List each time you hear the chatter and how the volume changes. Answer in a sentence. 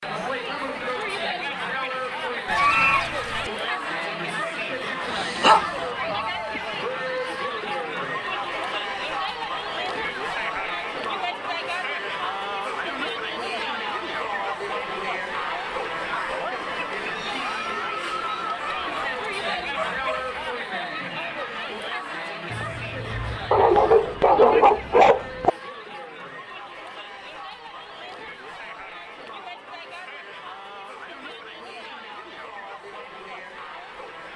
You can hear the chatter from 0.0 to 34.3 s, getting quieter.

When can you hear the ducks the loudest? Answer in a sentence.
The loudest moment of the ducks is at 3 seconds.